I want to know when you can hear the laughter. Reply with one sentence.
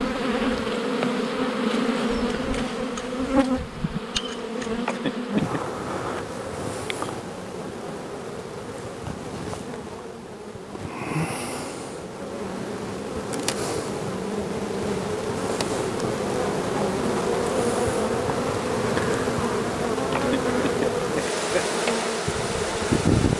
The laughter can be heard from 4.8 to 5.6 s and from 20.1 to 21.6 s.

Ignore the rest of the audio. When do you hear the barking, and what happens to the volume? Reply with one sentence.
You can't hear the barking here.